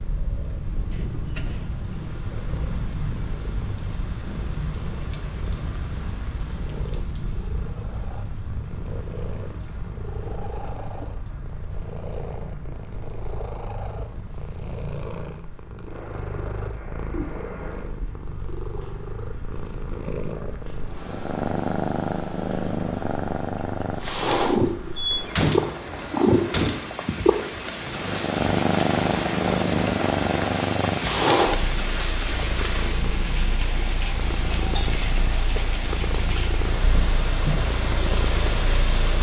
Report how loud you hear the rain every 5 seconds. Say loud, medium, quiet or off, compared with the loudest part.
medium, medium, quiet, quiet, quiet, loud, loud, loud.